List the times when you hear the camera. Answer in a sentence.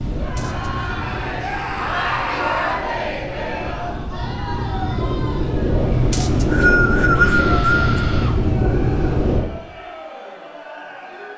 You can't hear the camera here.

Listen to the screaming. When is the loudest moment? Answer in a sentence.
The volume of the screaming peaks at 2 seconds.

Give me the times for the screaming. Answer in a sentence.
You can hear the screaming from 1.4 to 2.9 s and from 7.1 to 8.4 s.